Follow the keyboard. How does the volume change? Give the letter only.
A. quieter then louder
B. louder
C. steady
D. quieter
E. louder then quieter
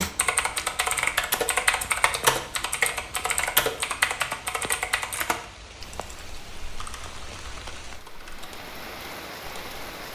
D.